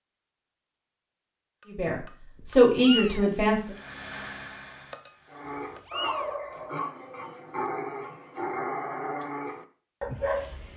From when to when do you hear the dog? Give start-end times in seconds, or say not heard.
5.3-10.7.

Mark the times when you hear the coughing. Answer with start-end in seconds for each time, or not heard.
not heard.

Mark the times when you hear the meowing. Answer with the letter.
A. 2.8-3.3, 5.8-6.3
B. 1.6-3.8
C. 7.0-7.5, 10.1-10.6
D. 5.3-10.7
A.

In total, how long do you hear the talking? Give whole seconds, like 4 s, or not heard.
2 s.